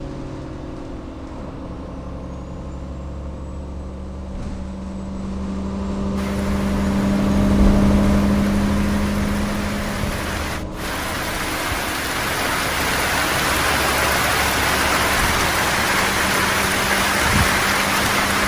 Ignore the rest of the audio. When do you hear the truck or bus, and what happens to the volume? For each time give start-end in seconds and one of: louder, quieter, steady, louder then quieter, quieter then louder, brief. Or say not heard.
0.0-18.4 louder then quieter.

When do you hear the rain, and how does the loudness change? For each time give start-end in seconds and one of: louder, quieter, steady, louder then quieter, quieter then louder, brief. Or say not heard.
6.2-18.4 louder.